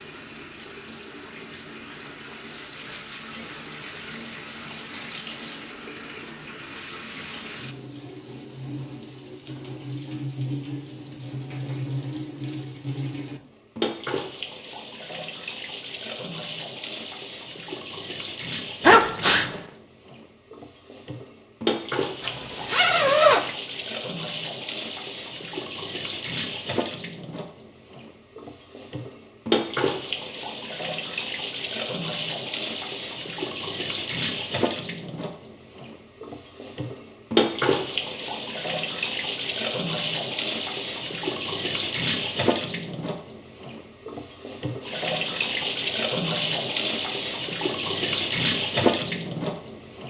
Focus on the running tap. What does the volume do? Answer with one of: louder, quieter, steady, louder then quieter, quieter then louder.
louder.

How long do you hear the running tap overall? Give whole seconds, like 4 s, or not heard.
50 s.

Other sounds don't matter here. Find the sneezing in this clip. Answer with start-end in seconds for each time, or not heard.
18.9-19.6.